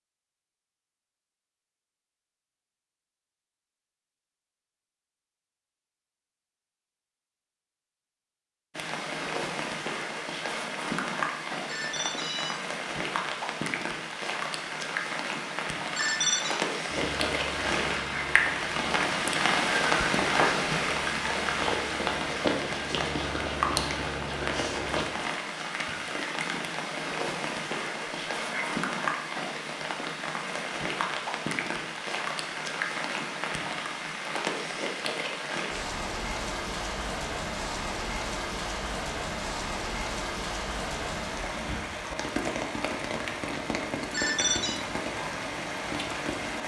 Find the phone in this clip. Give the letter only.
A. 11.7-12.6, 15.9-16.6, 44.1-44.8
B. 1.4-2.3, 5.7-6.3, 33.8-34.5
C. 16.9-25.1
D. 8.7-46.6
A.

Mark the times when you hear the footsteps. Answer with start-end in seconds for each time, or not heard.
16.9-25.1.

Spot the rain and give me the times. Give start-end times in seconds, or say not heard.
8.7-46.6.